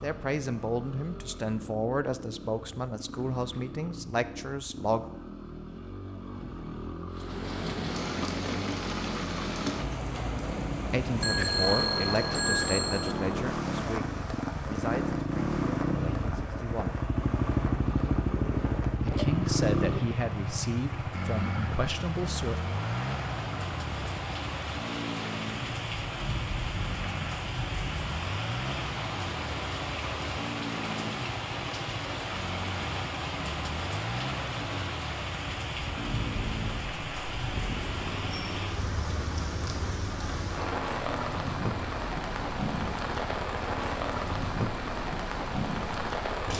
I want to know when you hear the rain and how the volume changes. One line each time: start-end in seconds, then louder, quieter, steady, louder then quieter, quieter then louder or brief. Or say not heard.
7.1-46.5 quieter then louder.